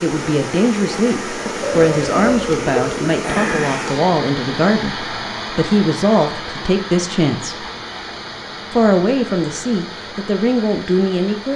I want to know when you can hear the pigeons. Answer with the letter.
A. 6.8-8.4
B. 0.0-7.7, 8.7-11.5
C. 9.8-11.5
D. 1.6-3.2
D.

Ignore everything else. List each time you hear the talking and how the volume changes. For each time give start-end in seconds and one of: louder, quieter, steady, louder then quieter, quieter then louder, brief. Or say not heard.
0.0-7.7 steady
8.7-11.5 brief.